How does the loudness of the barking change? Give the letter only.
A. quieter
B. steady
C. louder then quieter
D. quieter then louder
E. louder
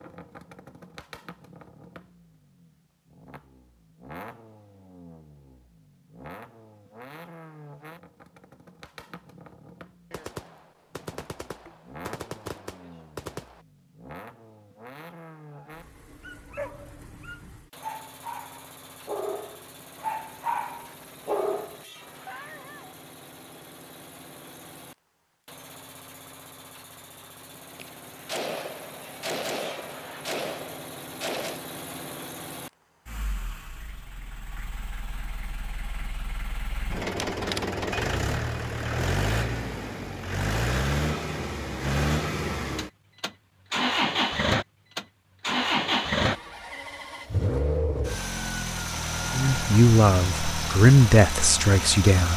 E.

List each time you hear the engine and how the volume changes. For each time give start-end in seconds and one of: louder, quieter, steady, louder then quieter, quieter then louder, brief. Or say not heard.
0.0-52.3 louder.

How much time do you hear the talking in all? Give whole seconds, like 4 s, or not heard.
3 s.